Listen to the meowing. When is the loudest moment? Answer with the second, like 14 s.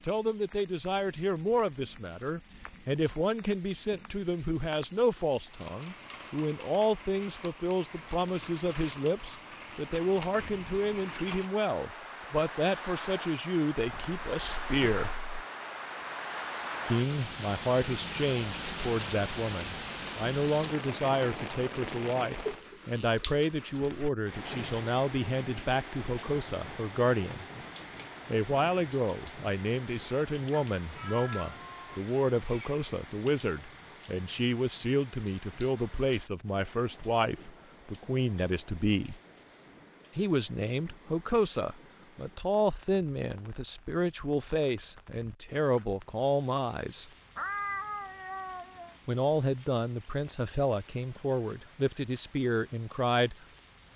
48 s.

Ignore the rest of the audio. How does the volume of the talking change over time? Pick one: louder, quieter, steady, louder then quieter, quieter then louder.
steady.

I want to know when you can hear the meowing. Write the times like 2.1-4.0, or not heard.
13.8-15.4, 30.5-32.8, 47.4-49.0.